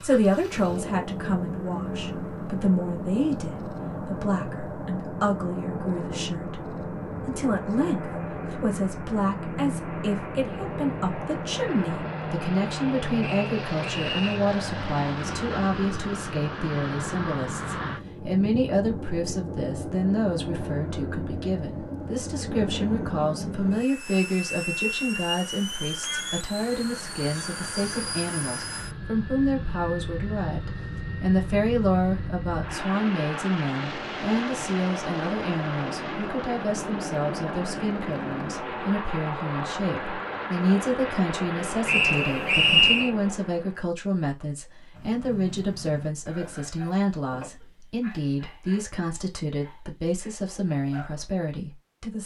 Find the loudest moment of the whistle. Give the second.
43 s.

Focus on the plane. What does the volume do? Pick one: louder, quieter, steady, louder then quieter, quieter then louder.
steady.